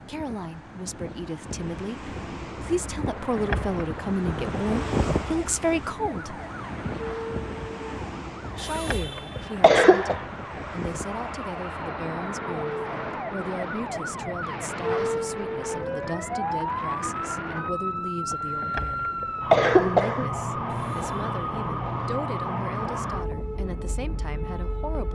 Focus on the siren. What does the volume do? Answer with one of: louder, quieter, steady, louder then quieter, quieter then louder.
louder.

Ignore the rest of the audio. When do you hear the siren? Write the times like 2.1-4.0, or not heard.
2.5-25.1.